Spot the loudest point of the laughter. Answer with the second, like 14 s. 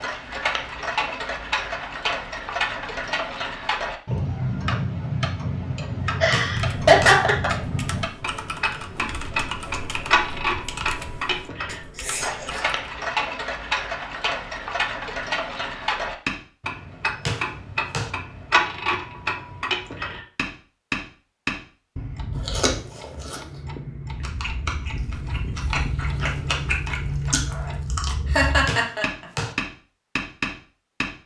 7 s.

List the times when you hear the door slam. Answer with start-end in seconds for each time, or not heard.
6.3-7.2, 17.2-18.1, 28.6-29.6.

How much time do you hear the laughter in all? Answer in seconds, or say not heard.
3 s.